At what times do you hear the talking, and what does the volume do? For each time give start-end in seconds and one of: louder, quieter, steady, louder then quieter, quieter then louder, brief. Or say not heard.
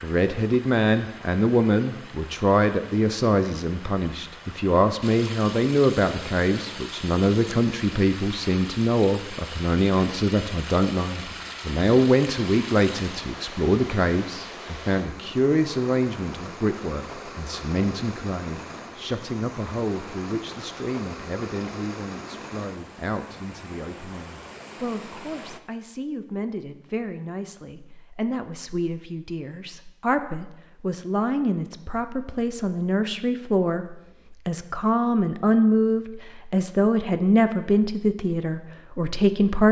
0.0-39.6 quieter then louder.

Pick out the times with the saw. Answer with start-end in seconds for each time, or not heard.
not heard.